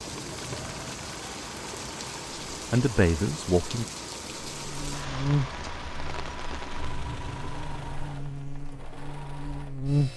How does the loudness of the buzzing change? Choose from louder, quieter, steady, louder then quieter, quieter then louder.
quieter then louder.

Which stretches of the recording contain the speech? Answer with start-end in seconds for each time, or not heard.
2.5-3.9.